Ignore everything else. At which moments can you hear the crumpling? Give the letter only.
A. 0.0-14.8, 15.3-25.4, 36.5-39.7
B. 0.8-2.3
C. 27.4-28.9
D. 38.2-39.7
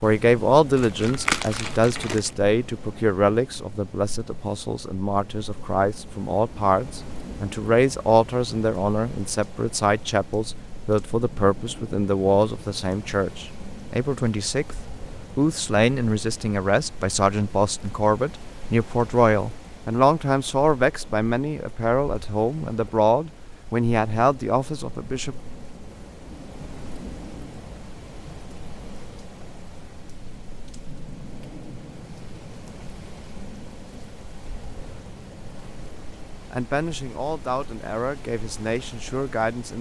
B.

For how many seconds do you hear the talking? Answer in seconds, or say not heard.
28 s.